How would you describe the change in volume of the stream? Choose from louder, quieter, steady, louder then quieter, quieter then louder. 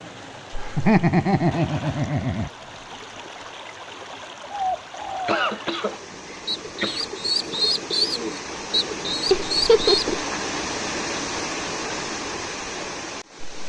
louder.